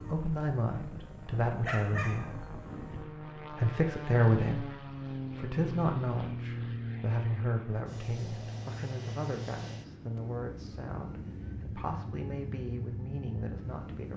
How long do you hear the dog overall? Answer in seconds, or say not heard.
3 s.